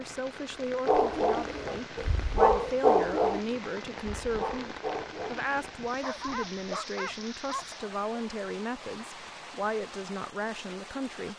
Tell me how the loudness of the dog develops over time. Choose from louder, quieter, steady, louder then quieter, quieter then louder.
quieter.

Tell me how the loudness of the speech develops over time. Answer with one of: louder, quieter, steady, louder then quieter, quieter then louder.
steady.